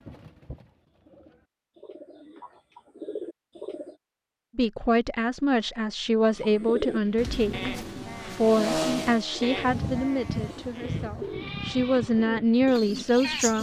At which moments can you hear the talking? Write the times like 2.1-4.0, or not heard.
4.5-13.5.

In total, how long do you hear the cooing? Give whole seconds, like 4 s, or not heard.
11 s.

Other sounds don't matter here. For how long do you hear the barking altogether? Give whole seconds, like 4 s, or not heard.
not heard.